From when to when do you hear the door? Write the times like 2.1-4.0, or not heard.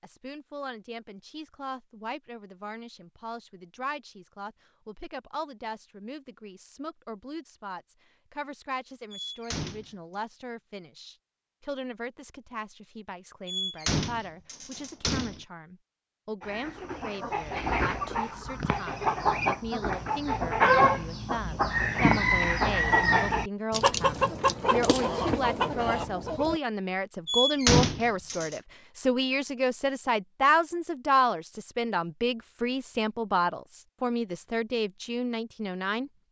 9.1-9.9, 13.4-15.4, 27.2-28.6.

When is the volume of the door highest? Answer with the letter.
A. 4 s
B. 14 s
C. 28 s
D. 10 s
C.